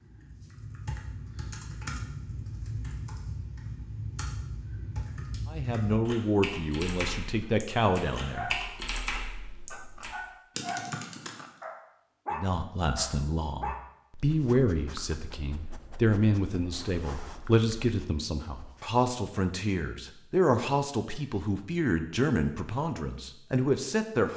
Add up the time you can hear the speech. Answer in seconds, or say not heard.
15 s.